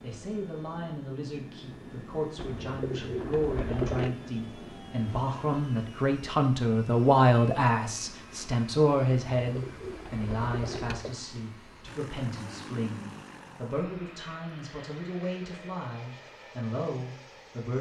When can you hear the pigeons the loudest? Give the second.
4 s.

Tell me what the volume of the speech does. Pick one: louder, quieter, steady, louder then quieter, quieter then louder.
louder then quieter.